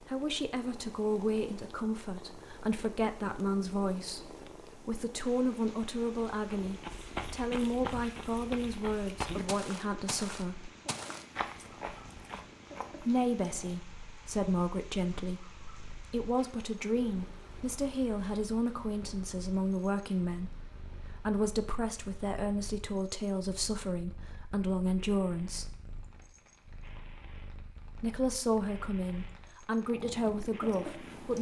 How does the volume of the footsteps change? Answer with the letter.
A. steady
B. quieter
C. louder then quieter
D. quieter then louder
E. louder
B.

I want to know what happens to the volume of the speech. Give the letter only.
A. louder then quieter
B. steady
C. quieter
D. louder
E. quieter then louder
B.